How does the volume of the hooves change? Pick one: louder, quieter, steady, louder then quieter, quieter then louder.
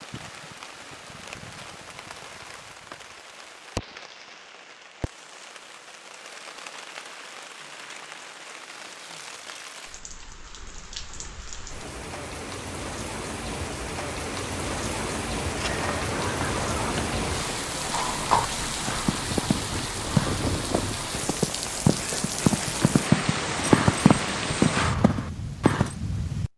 louder.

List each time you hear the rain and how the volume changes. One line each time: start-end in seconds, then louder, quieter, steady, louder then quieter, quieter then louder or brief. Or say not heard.
0.0-26.5 louder.